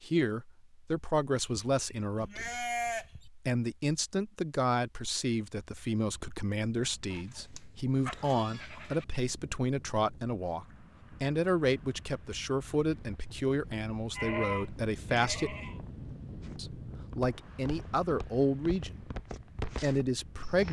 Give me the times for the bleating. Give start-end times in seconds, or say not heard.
1.3-3.2, 7.1-9.1, 14.2-15.8.